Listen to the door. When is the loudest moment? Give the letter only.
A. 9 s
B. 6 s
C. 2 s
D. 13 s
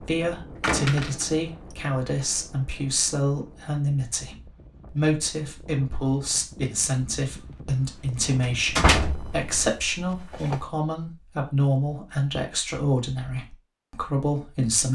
A.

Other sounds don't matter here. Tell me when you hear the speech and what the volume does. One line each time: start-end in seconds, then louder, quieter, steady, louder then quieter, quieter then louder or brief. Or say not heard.
0.1-14.8 steady.